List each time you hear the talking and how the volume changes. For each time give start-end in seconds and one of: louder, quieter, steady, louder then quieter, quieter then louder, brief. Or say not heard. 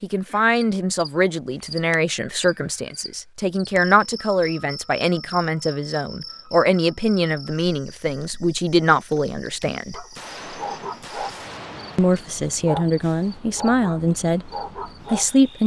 0.0-10.1 steady
11.9-14.5 brief
15.1-15.6 brief.